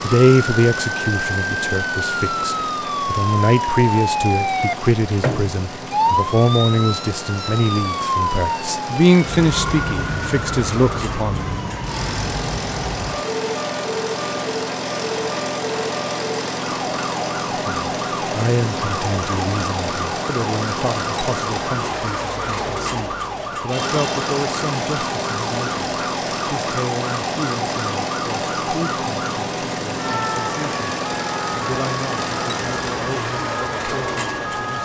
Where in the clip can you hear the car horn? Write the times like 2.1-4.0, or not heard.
not heard.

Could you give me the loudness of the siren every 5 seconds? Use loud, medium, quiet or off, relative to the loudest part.
loud, loud, medium, medium, medium, medium, medium.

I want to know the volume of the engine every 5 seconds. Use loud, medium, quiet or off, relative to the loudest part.
medium, medium, loud, loud, loud, loud, loud.